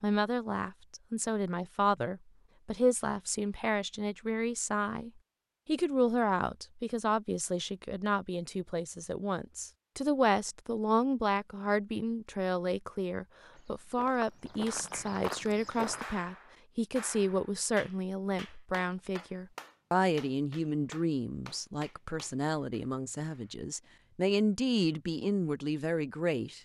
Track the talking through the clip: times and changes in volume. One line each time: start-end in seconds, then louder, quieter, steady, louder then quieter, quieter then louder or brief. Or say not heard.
0.0-26.6 steady.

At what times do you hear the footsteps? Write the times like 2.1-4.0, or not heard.
13.5-16.1.